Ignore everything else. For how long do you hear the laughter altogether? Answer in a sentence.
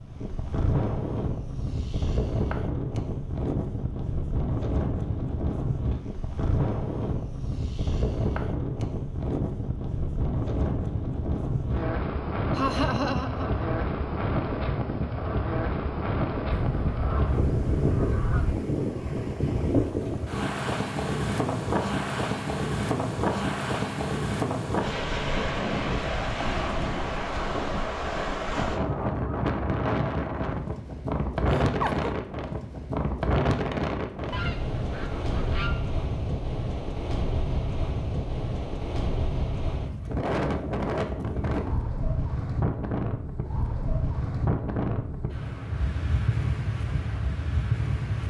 The laughter can be heard for 2 seconds in total.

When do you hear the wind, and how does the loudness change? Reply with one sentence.
The wind can be heard from 0.0 to 48.2 s, at a steady volume.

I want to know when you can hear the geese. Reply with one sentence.
You can hear the geese from 16.5 to 18.6 s and from 34.3 to 35.7 s.